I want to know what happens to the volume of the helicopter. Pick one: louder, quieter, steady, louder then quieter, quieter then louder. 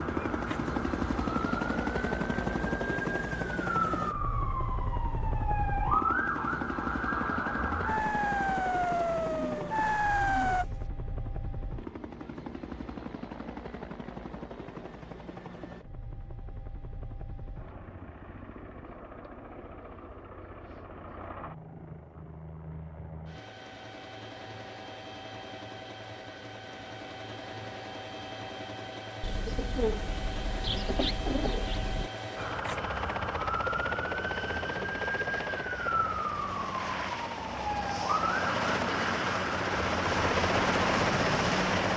quieter then louder.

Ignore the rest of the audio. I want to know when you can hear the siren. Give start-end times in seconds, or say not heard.
0.0-10.7, 32.4-41.9.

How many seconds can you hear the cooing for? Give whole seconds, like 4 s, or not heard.
5 s.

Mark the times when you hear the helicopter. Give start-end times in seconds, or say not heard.
0.0-41.9.